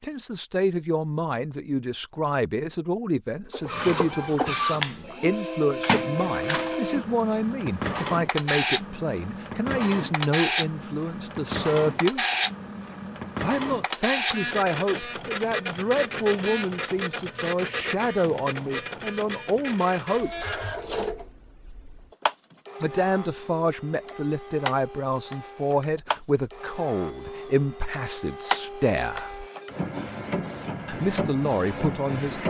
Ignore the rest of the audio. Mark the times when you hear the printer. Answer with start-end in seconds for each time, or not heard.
3.5-32.4.